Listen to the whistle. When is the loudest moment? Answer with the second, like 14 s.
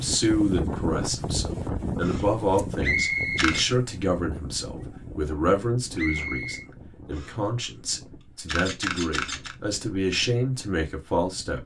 3 s.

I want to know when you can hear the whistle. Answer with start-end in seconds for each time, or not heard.
2.8-3.5, 6.0-6.7.